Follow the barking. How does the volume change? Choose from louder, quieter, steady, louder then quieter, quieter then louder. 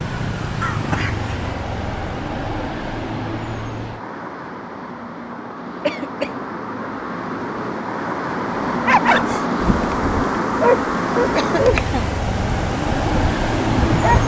quieter.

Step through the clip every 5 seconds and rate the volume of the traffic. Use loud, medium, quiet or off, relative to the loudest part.
medium, loud, loud.